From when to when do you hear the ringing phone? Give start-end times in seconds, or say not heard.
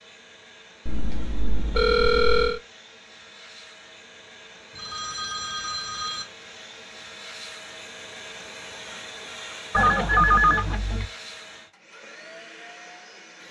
0.8-2.6, 4.8-6.2, 9.7-11.1.